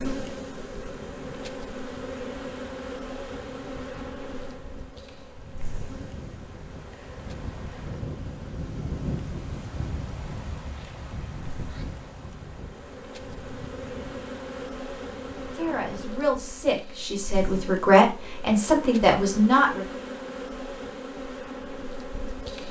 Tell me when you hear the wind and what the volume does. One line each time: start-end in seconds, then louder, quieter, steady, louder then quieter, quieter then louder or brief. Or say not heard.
0.0-15.9 louder then quieter.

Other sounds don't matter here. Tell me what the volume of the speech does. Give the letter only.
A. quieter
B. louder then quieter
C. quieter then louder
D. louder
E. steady
D.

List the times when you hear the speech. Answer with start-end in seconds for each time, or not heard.
15.5-19.9.